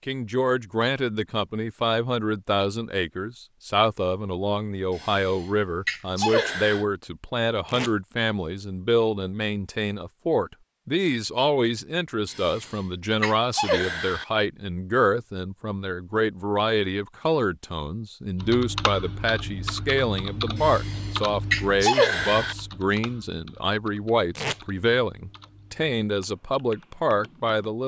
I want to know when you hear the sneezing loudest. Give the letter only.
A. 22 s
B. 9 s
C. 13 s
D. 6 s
A.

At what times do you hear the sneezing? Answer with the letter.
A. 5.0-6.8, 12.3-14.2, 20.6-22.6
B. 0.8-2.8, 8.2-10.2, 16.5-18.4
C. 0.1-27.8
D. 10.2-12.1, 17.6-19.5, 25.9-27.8
A.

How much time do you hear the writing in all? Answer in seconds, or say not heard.
not heard.